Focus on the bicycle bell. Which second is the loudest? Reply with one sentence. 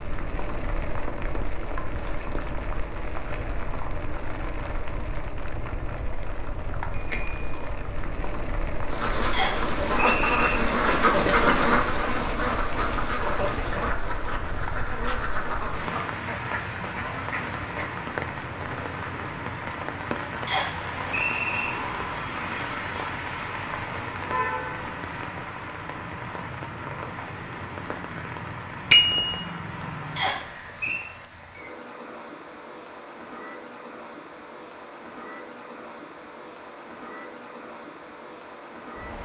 The loudest moment of the bicycle bell is at 29 seconds.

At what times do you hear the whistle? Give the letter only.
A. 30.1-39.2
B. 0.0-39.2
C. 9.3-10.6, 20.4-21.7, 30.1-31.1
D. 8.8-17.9
C.